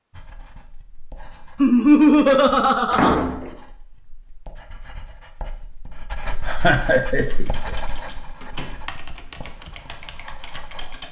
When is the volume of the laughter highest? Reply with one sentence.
The loudest moment of the laughter is at 2 seconds.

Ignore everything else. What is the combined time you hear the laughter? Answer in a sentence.
You can hear the laughter for 3 seconds altogether.